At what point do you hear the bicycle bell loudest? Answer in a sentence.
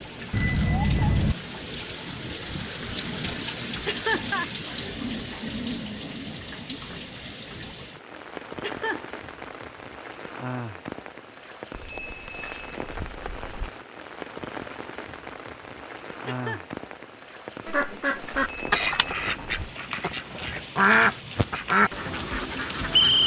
The volume of the bicycle bell peaks at 1 second.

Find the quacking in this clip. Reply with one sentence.
The quacking can be heard from 17.6 to 23.2 s.